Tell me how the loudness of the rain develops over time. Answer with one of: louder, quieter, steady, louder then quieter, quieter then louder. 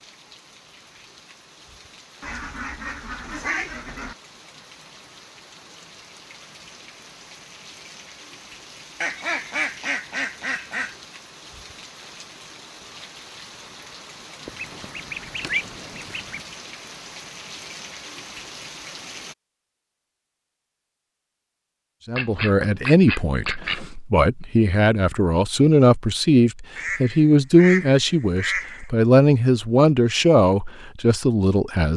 louder.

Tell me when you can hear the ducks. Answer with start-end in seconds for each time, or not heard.
2.2-4.2, 9.0-10.9, 14.4-16.4, 22.1-23.9, 26.8-28.9.